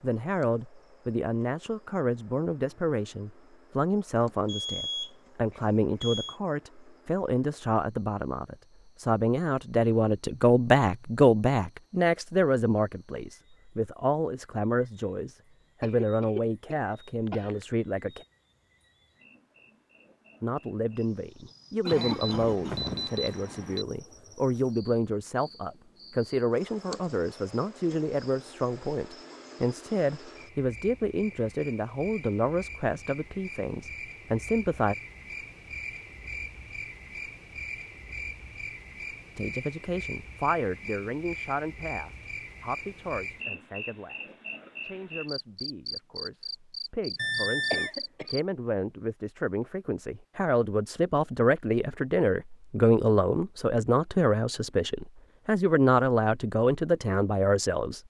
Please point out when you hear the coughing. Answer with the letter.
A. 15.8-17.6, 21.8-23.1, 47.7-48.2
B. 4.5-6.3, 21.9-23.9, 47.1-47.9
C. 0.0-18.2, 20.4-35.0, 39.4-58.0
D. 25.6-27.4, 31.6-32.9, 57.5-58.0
A.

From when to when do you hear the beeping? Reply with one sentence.
The beeping can be heard from 4.5 to 6.3 s, from 21.9 to 23.9 s and from 47.1 to 47.9 s.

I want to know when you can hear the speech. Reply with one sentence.
The speech can be heard from 0.0 to 18.2 s, from 20.4 to 35.0 s and from 39.4 to 58.0 s.